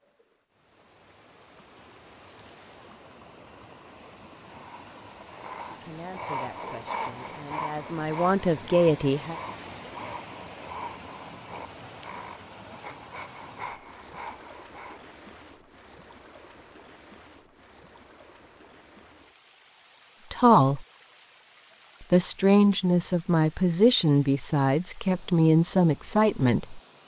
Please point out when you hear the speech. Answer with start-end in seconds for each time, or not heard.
5.7-9.3, 20.3-20.9, 22.1-26.8.